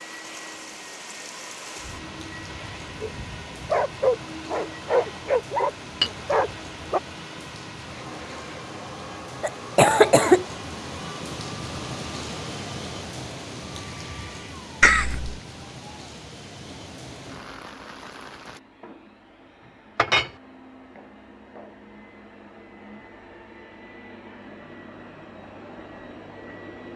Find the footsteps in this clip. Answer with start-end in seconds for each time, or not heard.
not heard.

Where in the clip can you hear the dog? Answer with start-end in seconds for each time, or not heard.
1.8-7.0.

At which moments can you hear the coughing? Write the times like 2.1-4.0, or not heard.
9.4-10.4, 14.8-15.3.